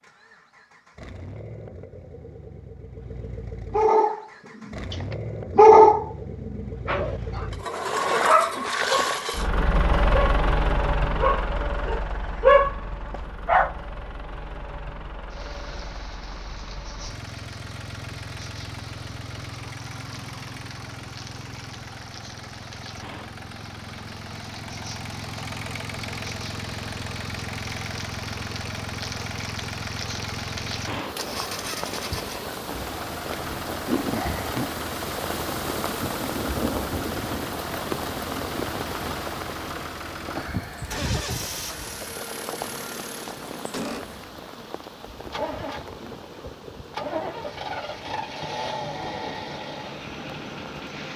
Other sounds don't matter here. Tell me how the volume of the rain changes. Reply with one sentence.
The volume of the rain goes up, then down.